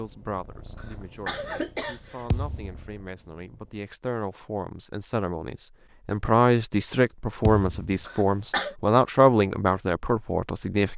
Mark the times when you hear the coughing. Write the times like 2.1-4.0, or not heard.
0.8-2.2, 8.1-8.8.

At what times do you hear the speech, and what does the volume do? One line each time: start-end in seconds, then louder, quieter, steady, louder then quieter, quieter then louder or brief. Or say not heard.
0.0-10.9 louder.